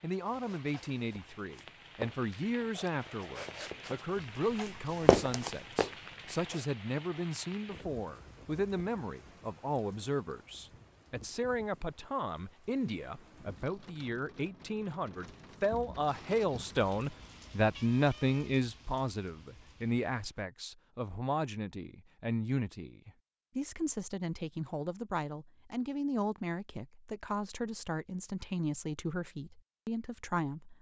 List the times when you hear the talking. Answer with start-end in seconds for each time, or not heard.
0.0-30.7.